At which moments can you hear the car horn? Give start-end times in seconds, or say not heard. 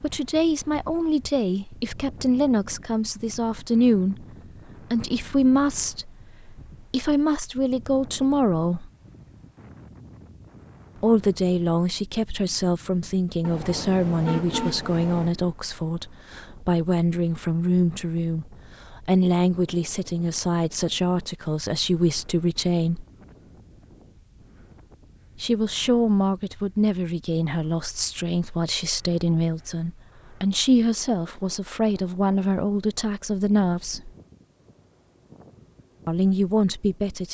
13.4-15.3.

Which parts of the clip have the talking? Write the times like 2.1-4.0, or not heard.
0.0-4.2, 4.9-8.9, 11.0-23.1, 25.4-34.1, 36.0-37.2.